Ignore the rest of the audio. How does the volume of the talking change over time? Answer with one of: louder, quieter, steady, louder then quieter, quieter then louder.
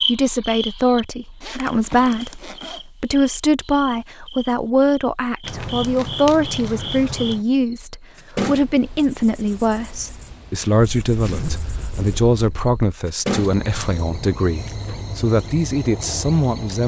steady.